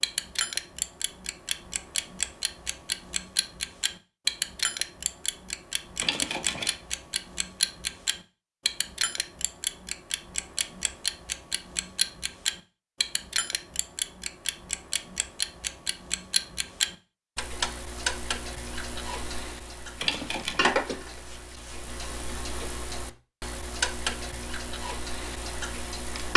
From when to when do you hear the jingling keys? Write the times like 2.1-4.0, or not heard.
6.0-6.8, 20.0-20.7.